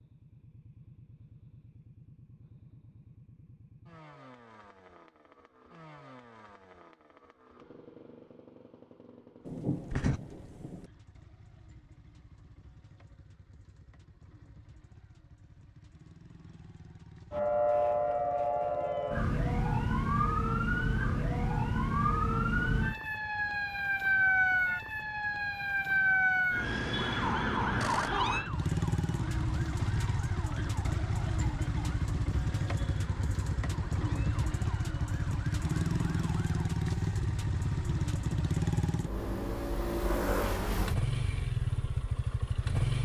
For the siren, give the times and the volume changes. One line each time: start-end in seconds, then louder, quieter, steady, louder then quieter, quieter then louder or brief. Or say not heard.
17.3-36.5 quieter.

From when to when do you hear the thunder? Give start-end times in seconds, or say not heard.
9.4-10.9.